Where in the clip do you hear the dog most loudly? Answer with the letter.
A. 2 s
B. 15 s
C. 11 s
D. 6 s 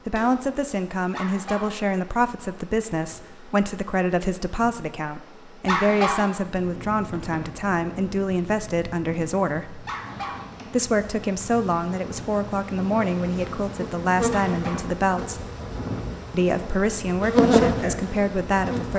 D.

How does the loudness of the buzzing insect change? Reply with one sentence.
The loudness of the buzzing insect goes up.